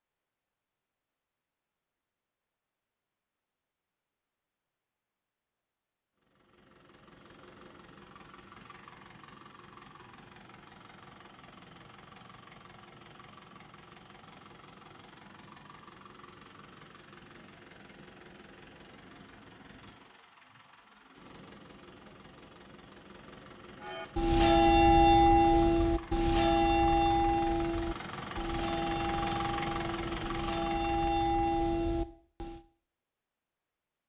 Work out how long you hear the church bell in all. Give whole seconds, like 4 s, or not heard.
9 s.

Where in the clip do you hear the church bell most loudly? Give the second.
25 s.